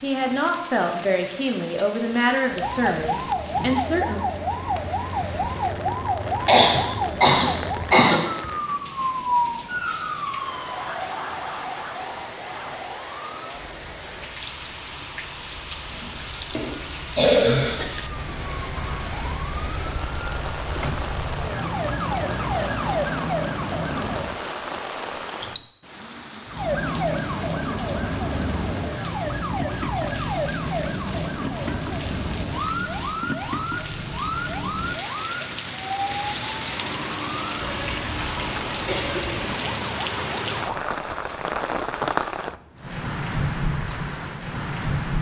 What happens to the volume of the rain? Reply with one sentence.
The loudness of the rain goes up.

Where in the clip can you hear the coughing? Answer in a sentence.
The coughing can be heard from 6.5 to 8.2 s, from 15.9 to 17.9 s and from 38.9 to 39.5 s.